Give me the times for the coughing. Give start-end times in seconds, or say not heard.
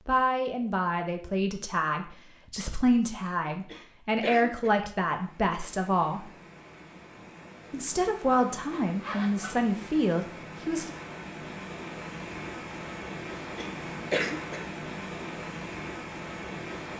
3.5-4.8, 13.4-14.7.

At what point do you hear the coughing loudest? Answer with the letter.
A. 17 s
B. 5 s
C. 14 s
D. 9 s
C.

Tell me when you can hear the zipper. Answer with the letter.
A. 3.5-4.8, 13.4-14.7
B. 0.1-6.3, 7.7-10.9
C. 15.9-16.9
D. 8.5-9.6
D.